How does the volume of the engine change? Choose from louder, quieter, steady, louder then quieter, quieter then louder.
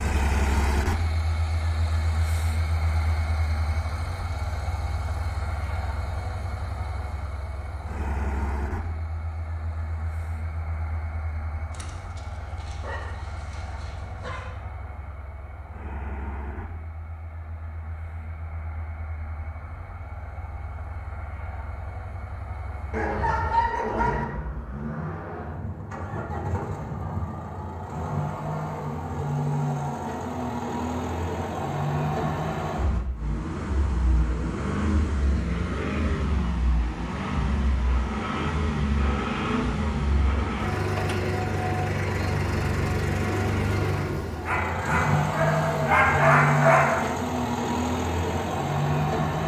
quieter then louder.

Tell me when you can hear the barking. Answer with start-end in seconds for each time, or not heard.
11.7-14.6, 22.9-24.2, 44.5-47.0.